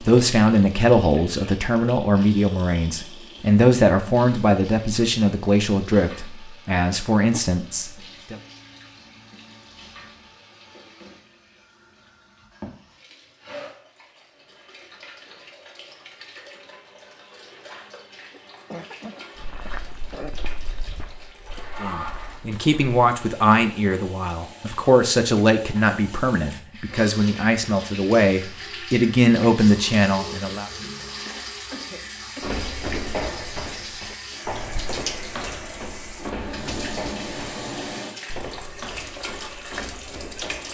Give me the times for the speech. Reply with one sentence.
You can hear the speech from 0.0 to 8.3 s and from 21.8 to 30.7 s.